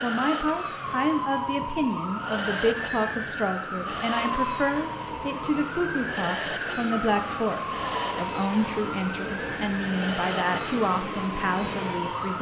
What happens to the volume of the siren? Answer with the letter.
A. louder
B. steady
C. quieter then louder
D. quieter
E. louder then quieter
B.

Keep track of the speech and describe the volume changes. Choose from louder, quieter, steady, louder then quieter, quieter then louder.
steady.